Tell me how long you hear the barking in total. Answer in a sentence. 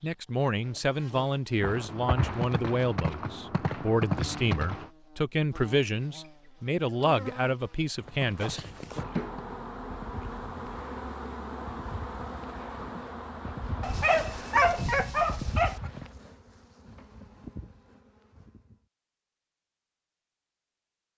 The barking can be heard for 2 seconds in total.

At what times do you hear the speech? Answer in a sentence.
The speech can be heard from 0.0 to 9.0 s.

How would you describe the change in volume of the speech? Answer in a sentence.
The loudness of the speech stays about the same.